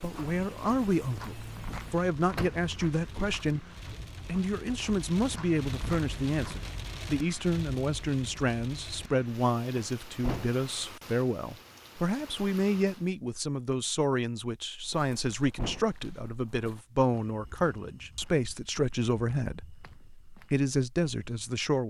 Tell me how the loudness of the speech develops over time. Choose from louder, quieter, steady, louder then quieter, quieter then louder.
steady.